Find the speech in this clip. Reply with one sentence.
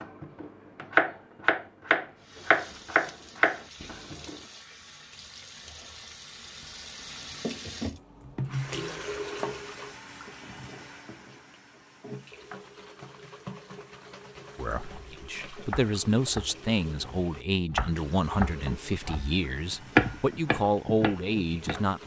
The speech can be heard from 14.6 to 22.0 s.